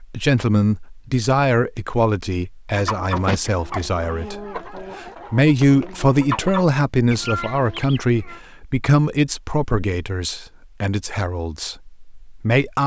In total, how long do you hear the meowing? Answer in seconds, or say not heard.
2 s.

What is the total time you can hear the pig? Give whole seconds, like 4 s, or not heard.
not heard.